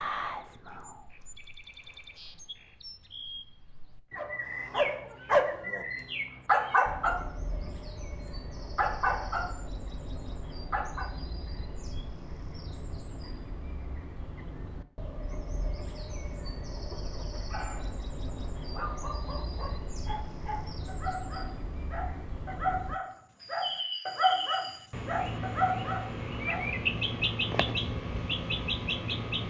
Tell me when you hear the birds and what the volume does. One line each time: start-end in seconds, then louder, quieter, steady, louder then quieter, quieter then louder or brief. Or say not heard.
0.0-29.4 louder.